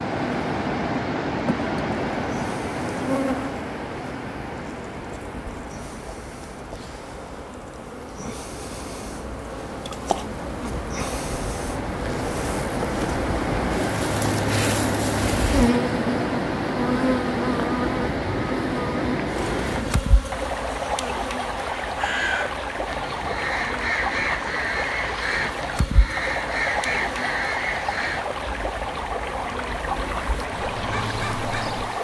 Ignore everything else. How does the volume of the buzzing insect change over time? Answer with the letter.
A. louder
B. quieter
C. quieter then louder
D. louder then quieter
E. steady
D.